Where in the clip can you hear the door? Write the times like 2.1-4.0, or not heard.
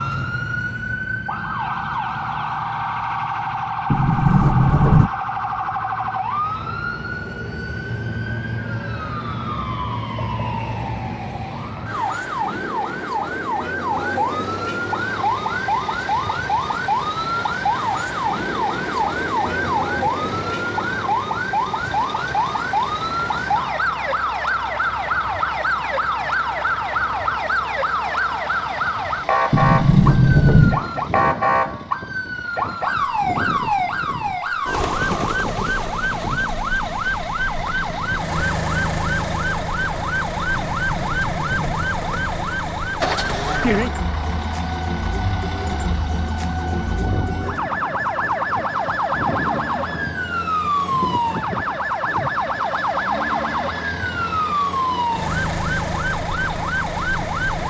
3.9-5.1, 29.5-30.9, 40.5-41.9.